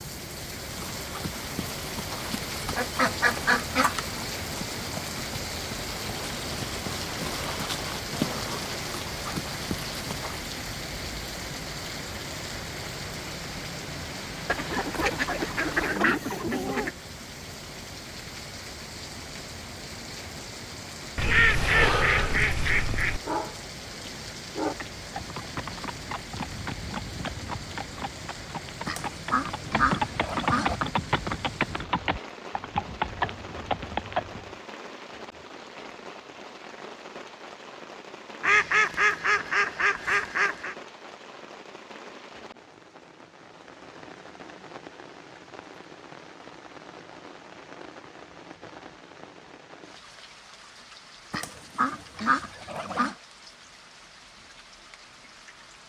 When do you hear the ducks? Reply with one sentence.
You can hear the ducks from 2.6 to 4.0 s, from 14.4 to 16.9 s, from 21.1 to 23.2 s, from 28.9 to 30.8 s, from 38.4 to 40.8 s and from 51.3 to 53.1 s.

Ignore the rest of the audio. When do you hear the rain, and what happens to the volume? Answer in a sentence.
The rain can be heard from 0.0 to 55.8 s, getting quieter.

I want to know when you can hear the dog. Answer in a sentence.
You can hear the dog from 23.2 to 24.8 s.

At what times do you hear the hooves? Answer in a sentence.
You can hear the hooves from 0.6 to 10.6 s and from 24.6 to 34.5 s.